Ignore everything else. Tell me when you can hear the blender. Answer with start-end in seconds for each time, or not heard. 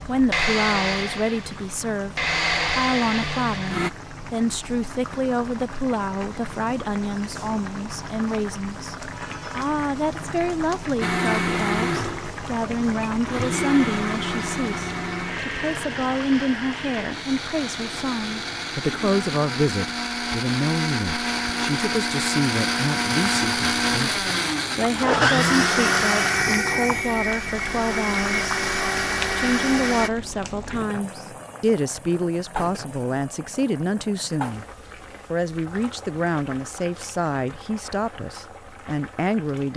0.0-3.9, 11.0-30.1.